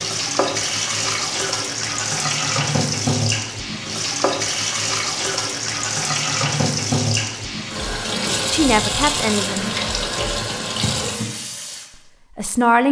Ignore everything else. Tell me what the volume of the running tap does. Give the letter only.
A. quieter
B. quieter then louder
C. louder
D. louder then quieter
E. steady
E.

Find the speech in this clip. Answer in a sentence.
You can hear the speech from 8.5 to 9.7 s and from 12.3 to 12.8 s.